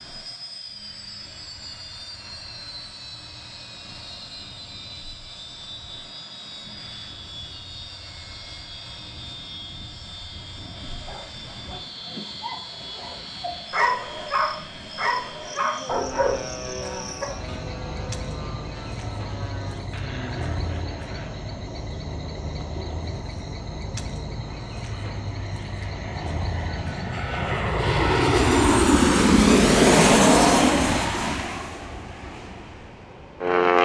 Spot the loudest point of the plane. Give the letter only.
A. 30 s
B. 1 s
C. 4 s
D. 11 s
A.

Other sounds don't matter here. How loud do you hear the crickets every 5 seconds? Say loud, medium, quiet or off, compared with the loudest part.
quiet, quiet, medium, loud, loud, loud, off.